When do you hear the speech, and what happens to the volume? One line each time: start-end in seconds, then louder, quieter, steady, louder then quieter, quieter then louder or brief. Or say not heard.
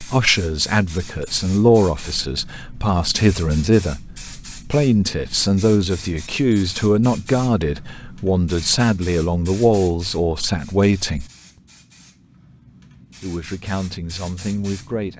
0.0-11.2 steady
13.2-15.1 brief.